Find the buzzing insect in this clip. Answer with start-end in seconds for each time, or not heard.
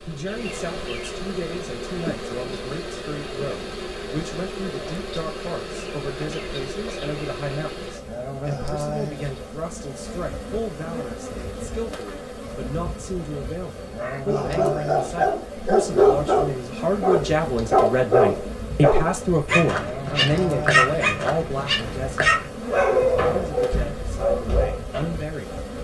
0.0-25.7.